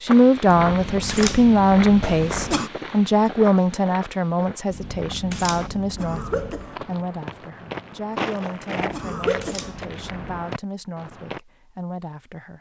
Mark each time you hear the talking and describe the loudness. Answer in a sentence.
You can hear the talking from 0.0 to 12.5 s, getting quieter.